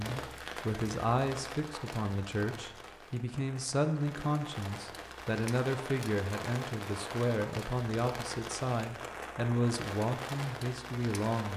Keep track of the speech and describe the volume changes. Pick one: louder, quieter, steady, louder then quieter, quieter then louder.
steady.